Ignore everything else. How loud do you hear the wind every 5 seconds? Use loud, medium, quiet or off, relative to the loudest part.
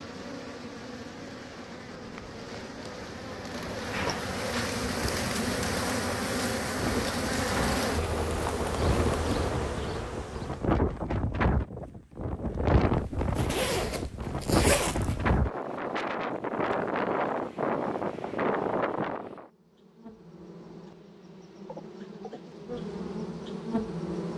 quiet, medium, loud, loud, off.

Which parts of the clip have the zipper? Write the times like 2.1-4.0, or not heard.
3.9-4.8, 12.9-15.4.